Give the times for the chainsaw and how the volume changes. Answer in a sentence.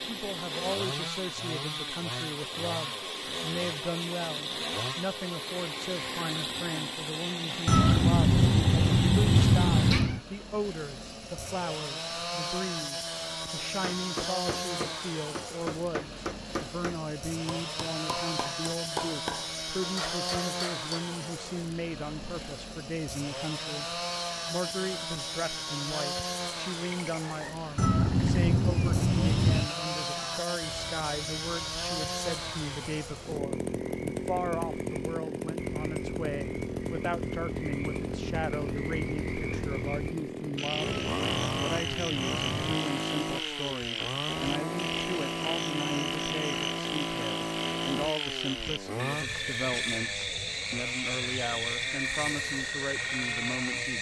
You can hear the chainsaw from 0.0 to 53.9 s, at a steady volume.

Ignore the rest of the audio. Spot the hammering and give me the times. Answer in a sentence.
The hammering can be heard from 13.7 to 20.9 s.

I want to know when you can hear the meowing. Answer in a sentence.
The meowing can be heard from 7.7 to 10.2 s, from 27.8 to 29.7 s and from 40.9 to 42.8 s.